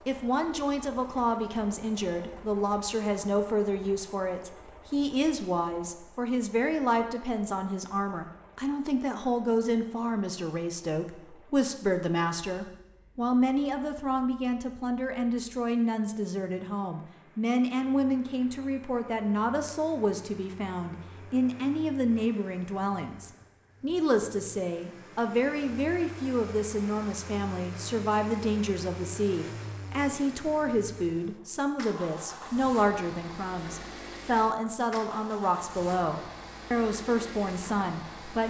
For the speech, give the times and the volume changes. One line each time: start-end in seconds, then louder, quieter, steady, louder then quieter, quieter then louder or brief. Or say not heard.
0.1-38.4 steady.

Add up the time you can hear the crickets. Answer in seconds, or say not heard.
not heard.